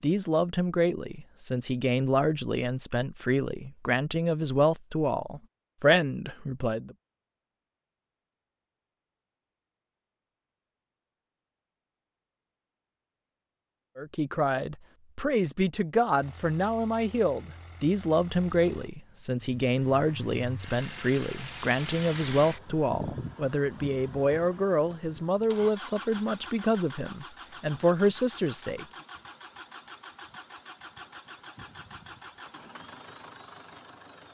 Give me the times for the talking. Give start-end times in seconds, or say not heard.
0.0-7.0, 13.9-28.9.